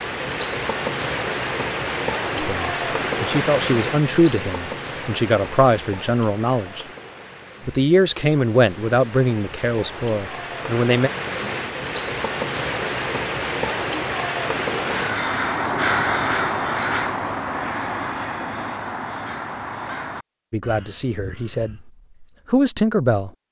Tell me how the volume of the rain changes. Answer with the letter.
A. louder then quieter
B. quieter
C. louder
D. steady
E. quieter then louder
E.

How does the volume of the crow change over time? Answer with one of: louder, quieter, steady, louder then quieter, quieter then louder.
quieter.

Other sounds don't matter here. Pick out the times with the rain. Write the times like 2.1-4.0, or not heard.
0.0-15.3.